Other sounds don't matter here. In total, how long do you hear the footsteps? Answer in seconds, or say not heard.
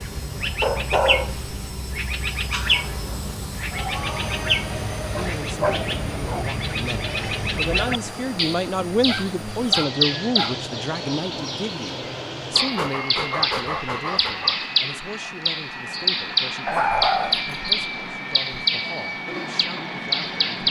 not heard.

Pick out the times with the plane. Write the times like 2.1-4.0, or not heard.
0.0-20.6.